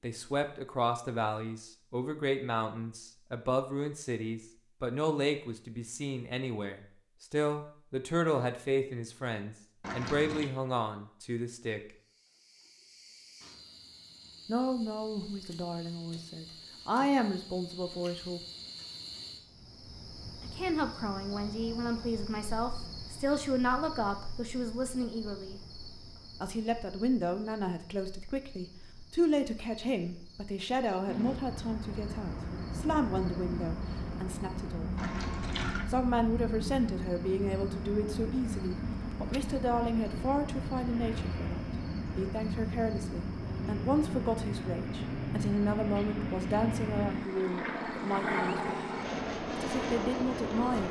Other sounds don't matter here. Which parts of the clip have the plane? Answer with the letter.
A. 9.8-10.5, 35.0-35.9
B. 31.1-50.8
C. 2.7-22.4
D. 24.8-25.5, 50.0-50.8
B.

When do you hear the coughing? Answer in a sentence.
The coughing can't be heard in this clip.